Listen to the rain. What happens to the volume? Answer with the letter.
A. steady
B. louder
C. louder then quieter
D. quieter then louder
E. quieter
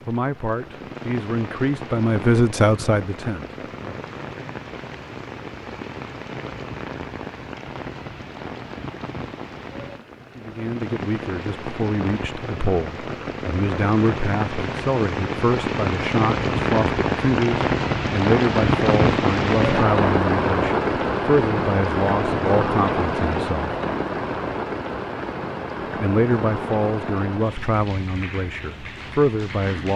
C.